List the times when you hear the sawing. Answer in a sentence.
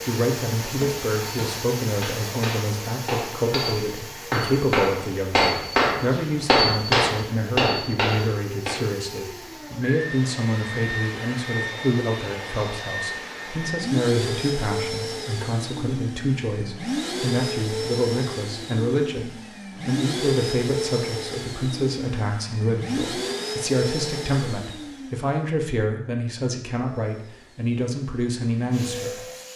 You can't hear the sawing here.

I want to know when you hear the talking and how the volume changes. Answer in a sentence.
You can hear the talking from 0.1 to 29.2 s, at a steady volume.